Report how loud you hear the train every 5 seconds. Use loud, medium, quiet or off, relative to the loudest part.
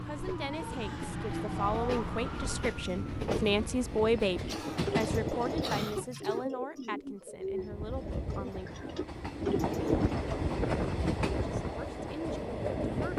medium, loud, loud.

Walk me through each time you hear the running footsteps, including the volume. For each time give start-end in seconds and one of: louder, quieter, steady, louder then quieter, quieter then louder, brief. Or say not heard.
not heard.